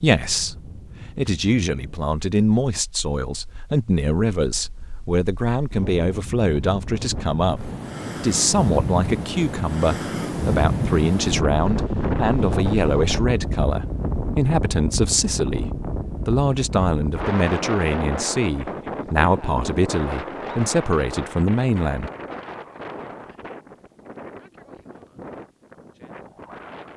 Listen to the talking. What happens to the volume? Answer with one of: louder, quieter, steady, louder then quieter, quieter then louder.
steady.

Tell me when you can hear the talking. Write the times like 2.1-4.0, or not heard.
0.0-22.1.